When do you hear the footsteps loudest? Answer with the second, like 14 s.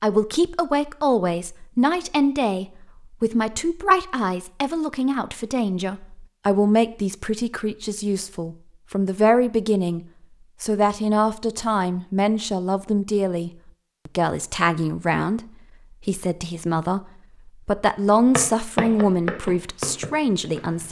19 s.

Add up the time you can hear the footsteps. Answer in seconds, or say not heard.
3 s.